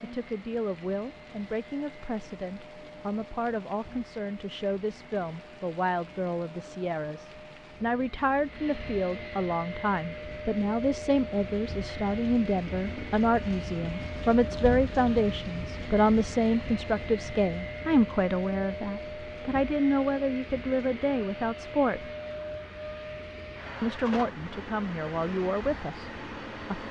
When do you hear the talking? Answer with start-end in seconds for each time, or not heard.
0.0-22.1, 23.8-26.8.